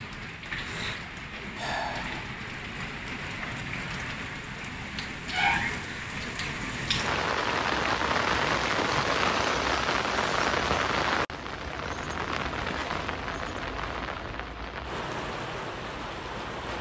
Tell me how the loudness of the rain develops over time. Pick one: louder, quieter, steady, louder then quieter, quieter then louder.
louder then quieter.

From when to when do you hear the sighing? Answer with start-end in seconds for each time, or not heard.
1.6-2.3.